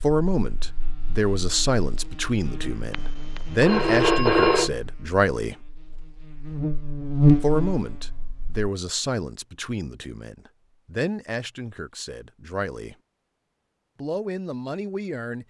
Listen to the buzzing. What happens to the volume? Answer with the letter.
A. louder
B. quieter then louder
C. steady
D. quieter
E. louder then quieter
A.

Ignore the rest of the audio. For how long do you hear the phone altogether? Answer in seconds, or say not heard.
2 s.